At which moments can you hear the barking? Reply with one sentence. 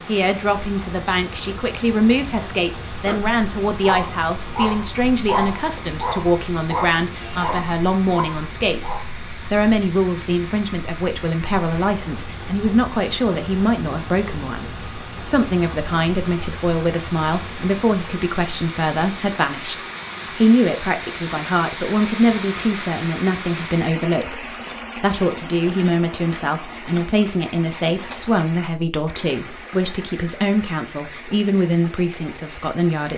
The barking can be heard from 2.9 to 9.1 s.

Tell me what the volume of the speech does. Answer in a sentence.
The volume of the speech stays about the same.